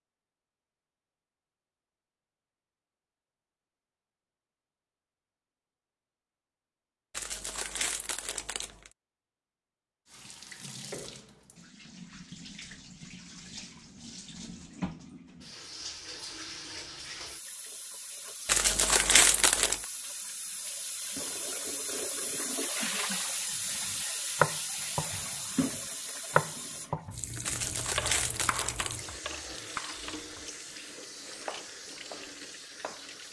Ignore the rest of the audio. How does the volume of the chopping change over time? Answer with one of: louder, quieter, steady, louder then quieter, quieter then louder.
quieter.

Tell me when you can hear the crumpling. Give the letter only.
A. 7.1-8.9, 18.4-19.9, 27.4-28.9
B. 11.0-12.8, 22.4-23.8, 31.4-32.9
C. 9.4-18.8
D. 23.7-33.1
A.